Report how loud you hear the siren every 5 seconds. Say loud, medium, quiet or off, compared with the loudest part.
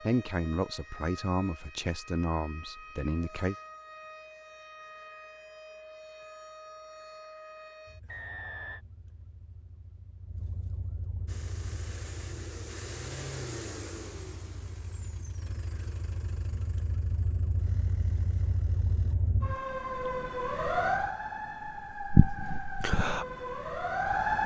quiet, quiet, quiet, medium, loud.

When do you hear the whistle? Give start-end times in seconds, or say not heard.
8.1-8.8.